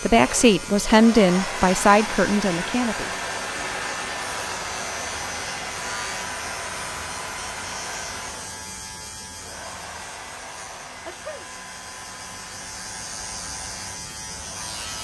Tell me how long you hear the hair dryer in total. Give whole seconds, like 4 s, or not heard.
15 s.